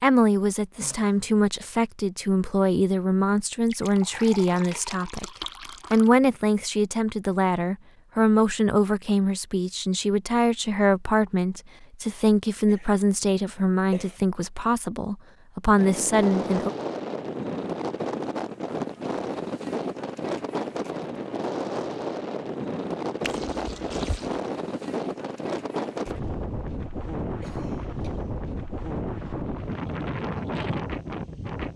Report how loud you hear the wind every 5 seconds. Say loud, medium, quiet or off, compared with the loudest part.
off, off, off, loud, loud, loud, loud.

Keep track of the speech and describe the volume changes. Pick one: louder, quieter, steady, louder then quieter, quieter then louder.
steady.